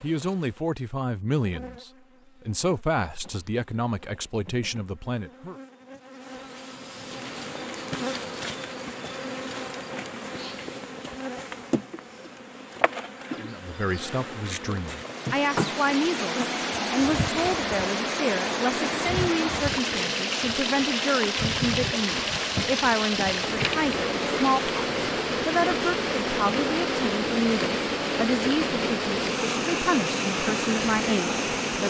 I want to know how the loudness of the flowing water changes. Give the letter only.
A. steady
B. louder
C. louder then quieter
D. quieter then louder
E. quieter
A.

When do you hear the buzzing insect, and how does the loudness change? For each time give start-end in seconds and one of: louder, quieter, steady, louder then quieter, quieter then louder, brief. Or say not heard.
0.0-31.8 louder.